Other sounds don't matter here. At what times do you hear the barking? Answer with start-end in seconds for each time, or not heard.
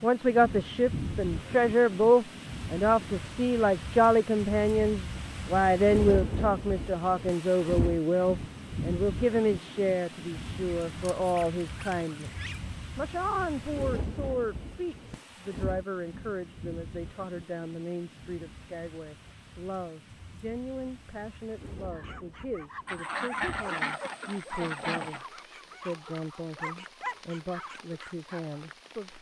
21.7-28.6.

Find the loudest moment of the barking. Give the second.
27 s.